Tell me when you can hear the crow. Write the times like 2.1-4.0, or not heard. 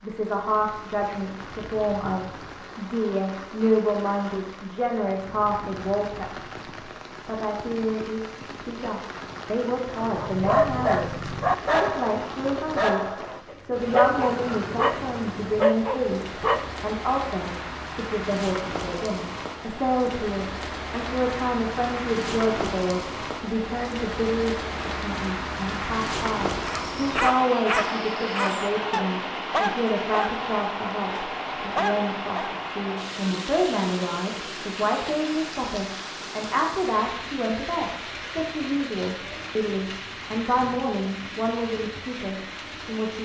not heard.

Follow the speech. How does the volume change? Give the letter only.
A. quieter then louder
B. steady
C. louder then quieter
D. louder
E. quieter
B.